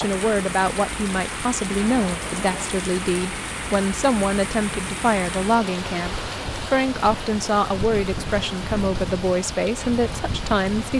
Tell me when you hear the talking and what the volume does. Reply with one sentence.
You can hear the talking from 0.0 to 10.9 s, at a steady volume.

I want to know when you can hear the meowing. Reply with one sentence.
You can't hear the meowing here.